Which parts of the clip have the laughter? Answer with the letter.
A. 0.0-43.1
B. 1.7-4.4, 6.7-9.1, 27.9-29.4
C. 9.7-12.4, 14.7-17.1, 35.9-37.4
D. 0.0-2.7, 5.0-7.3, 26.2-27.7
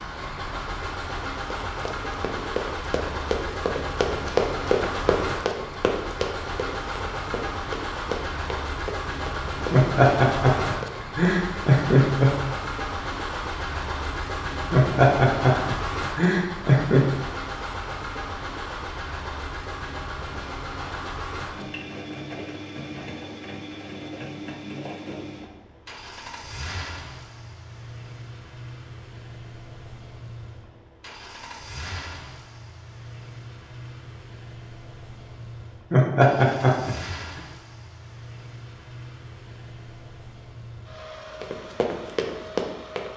C.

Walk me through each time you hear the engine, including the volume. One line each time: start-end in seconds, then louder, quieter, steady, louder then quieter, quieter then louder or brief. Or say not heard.
0.0-43.1 quieter.